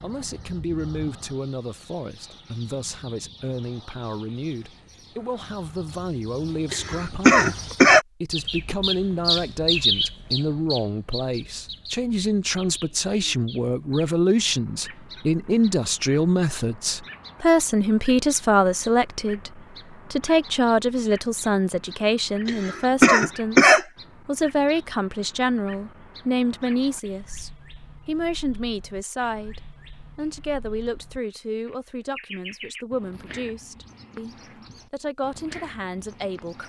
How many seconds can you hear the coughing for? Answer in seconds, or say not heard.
3 s.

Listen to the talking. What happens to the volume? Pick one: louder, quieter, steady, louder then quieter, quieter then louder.
louder then quieter.